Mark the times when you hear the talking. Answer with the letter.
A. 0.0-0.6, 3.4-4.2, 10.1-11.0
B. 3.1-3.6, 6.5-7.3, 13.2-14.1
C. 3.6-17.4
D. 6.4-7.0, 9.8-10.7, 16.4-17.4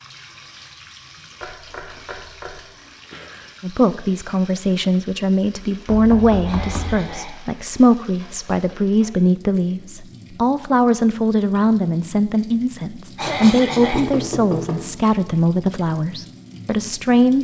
C.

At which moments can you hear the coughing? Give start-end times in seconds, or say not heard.
3.1-3.6, 6.5-7.3, 13.2-14.1.